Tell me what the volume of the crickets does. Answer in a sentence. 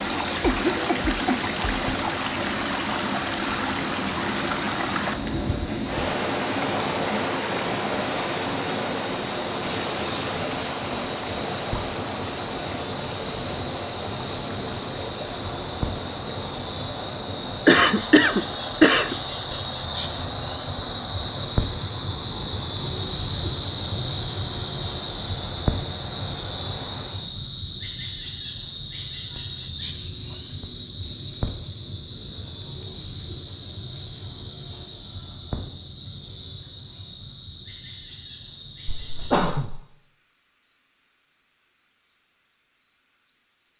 The volume of the crickets goes up, then down.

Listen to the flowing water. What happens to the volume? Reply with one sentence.
The volume of the flowing water goes down.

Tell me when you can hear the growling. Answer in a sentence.
The growling can't be heard in this clip.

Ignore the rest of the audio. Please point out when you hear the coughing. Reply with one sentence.
You can hear the coughing from 0.4 to 1.4 s, from 17.6 to 19.1 s and from 38.9 to 39.9 s.